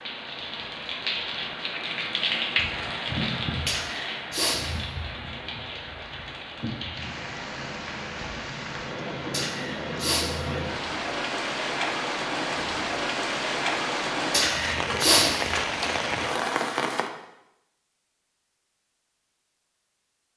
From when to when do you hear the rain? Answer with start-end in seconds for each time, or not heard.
0.0-17.1.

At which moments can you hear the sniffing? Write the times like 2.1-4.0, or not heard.
3.6-4.6, 9.3-10.2, 14.3-15.2.